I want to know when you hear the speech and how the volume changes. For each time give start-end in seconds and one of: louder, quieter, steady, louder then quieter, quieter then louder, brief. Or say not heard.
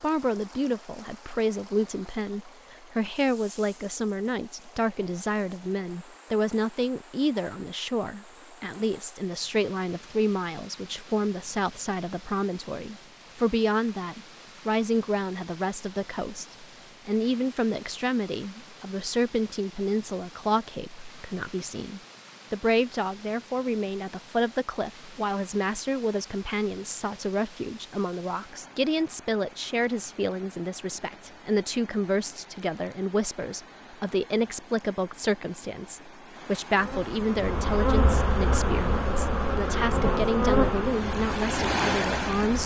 0.0-42.6 steady.